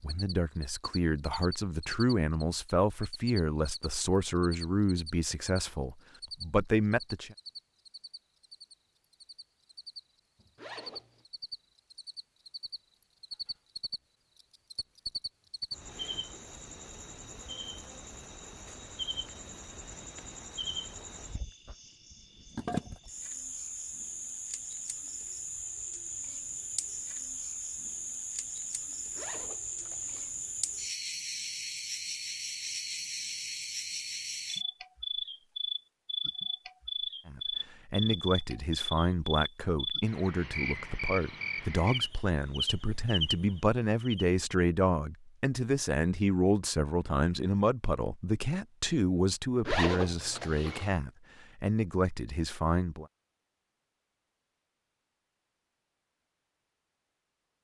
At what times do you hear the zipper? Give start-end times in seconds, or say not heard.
10.6-11.2, 29.1-30.3, 49.6-50.9.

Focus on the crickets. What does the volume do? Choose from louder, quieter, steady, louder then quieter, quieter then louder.
louder.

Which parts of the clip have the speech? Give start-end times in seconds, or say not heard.
0.0-7.3, 37.2-53.0.